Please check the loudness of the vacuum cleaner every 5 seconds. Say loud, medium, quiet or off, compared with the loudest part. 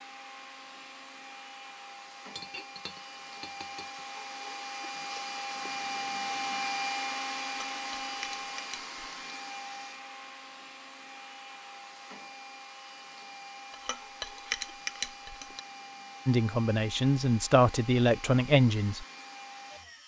medium, loud, medium, medium.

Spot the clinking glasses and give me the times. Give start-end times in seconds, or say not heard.
2.4-4.0, 7.5-9.2, 13.7-15.6.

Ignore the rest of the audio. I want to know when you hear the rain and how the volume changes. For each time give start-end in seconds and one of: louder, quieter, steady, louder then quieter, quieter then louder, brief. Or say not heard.
not heard.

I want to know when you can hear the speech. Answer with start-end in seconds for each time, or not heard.
16.2-19.1.